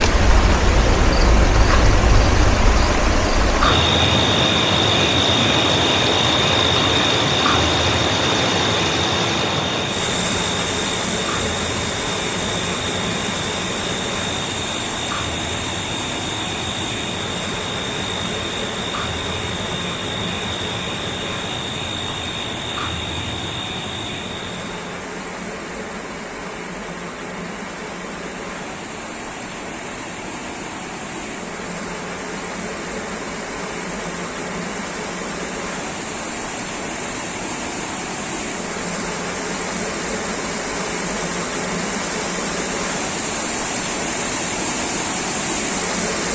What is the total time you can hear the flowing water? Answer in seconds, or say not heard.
46 s.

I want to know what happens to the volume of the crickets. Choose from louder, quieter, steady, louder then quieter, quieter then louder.
quieter.